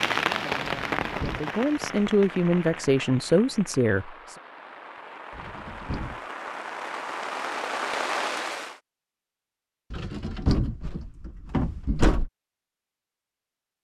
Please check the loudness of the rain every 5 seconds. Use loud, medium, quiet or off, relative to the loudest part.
loud, loud, off.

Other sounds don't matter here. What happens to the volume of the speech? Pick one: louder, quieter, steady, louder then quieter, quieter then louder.
louder.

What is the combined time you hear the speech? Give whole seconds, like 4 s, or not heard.
4 s.